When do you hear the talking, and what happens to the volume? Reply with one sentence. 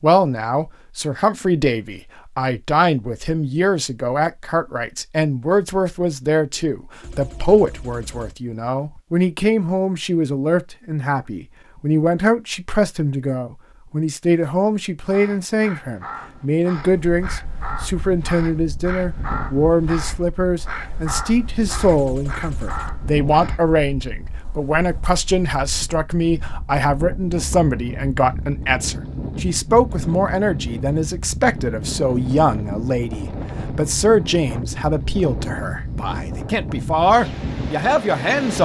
The talking can be heard from 0.0 to 38.6 s, at a steady volume.